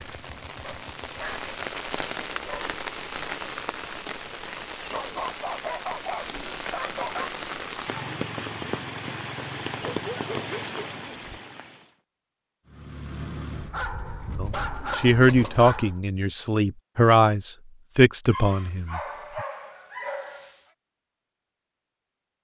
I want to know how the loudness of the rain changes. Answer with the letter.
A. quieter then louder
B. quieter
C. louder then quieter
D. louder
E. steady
E.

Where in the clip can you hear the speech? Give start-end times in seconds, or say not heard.
14.3-19.4.